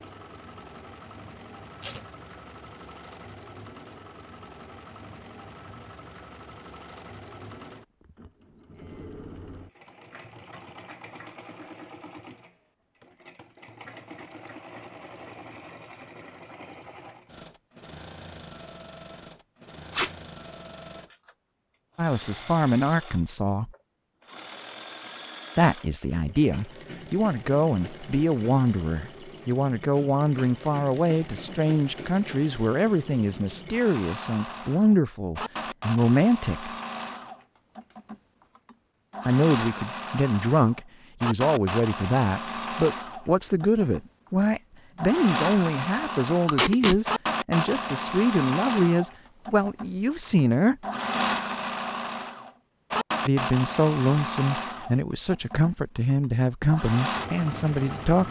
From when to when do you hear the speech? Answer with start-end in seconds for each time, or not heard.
21.9-23.7, 25.6-36.7, 39.2-50.8, 53.2-58.2.